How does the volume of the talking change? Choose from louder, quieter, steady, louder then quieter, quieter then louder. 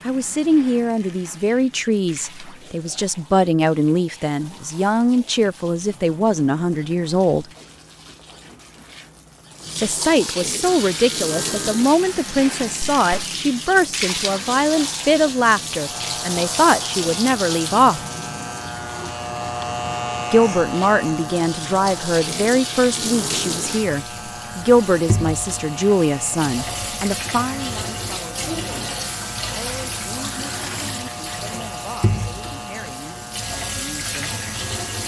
quieter.